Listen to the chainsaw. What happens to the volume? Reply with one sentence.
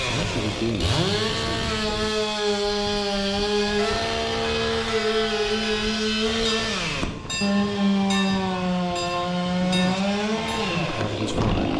The volume of the chainsaw stays about the same.